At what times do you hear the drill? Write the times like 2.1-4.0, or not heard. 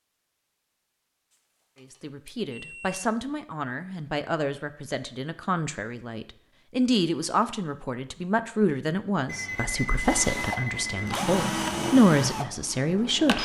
10.0-13.4.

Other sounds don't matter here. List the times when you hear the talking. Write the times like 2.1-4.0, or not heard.
1.8-13.4.